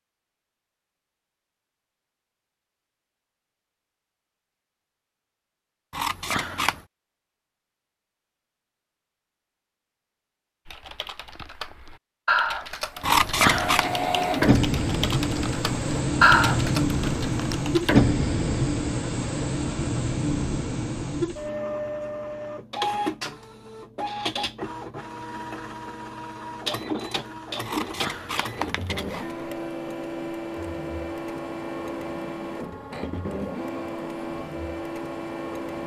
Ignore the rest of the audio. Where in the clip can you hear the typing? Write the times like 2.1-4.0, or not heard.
10.7-18.0.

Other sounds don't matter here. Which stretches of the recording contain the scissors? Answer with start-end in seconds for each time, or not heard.
5.9-6.8, 13.0-13.8, 27.6-29.3.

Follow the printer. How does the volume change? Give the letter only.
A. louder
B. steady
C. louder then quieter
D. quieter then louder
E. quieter
E.